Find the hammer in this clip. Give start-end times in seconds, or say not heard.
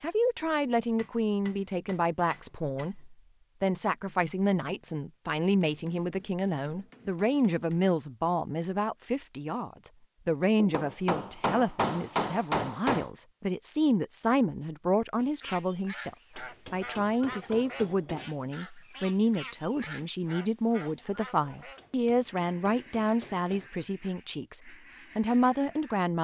0.9-3.0, 5.6-7.9, 10.6-13.1, 16.4-18.2, 21.8-23.7.